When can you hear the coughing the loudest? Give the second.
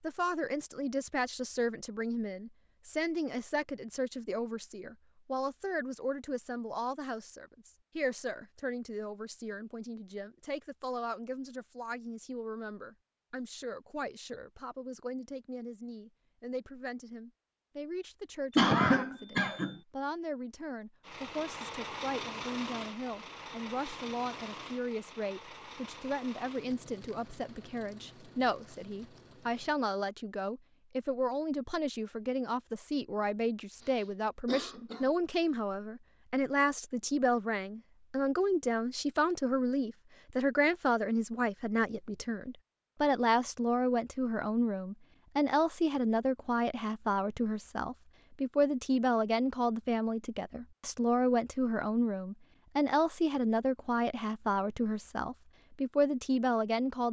19 s.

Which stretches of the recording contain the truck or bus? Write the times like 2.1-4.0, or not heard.
21.0-29.8.